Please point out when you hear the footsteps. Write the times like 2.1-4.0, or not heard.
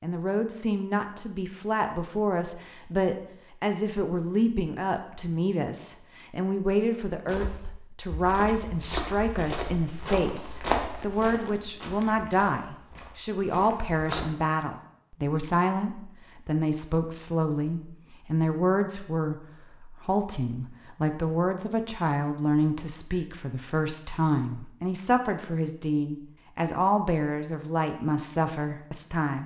7.2-14.3.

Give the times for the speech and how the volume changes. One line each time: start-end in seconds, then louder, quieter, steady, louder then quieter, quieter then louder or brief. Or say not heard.
0.0-29.4 steady.